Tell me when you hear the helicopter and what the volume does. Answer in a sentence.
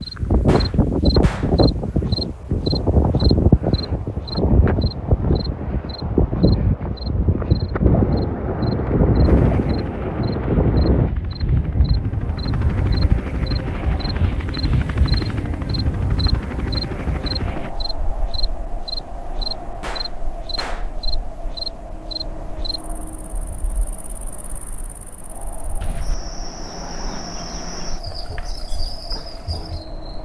You can hear the helicopter from 9.2 to 17.8 s, getting louder.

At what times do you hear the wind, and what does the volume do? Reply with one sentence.
You can hear the wind from 0.0 to 30.1 s, getting quieter.